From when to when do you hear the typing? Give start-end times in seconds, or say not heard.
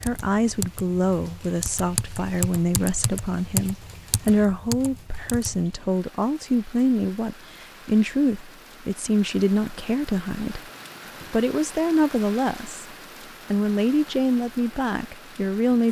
0.0-5.7.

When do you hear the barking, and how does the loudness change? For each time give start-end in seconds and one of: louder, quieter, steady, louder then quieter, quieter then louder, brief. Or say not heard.
not heard.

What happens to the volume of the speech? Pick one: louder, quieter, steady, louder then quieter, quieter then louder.
steady.